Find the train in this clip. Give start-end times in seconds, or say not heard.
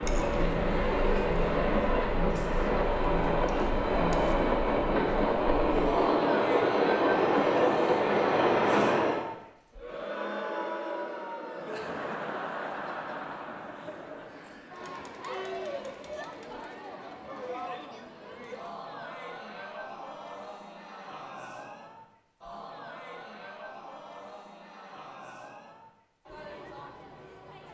0.0-9.2.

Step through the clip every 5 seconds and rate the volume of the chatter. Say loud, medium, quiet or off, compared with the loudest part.
loud, loud, loud, medium, medium, quiet.